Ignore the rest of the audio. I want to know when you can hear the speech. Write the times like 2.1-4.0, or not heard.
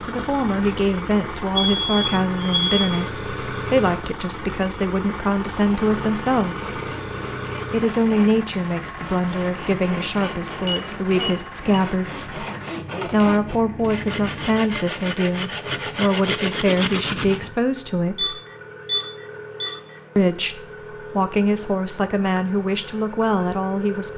0.1-6.9, 7.7-12.4, 13.1-18.4, 20.1-24.1.